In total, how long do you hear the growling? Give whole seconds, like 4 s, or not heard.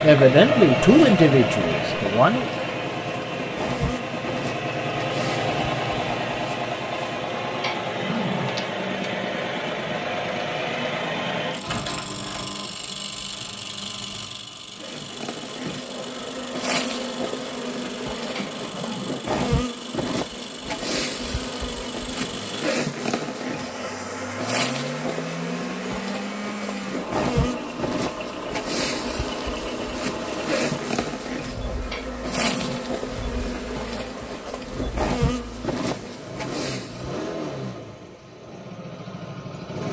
3 s.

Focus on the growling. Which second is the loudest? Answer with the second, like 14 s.
8 s.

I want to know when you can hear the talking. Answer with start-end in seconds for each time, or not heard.
0.0-2.5.